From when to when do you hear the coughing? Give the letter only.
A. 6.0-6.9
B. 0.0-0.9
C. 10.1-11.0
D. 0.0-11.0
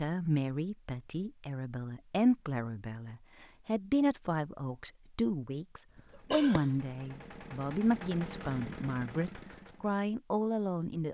A.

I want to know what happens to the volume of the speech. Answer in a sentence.
The loudness of the speech stays about the same.